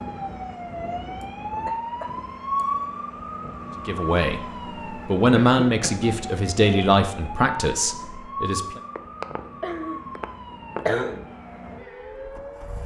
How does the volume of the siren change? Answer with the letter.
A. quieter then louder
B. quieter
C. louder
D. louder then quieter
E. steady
B.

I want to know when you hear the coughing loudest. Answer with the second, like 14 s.
11 s.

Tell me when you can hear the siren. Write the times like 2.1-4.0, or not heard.
0.0-12.8.